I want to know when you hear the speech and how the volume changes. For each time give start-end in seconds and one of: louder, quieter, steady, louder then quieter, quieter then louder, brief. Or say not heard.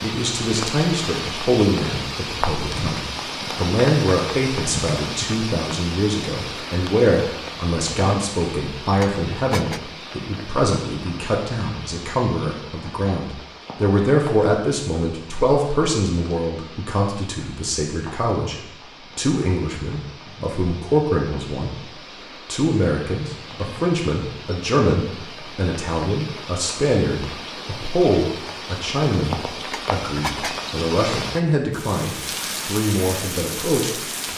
0.0-34.0 steady.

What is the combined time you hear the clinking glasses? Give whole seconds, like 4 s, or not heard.
2 s.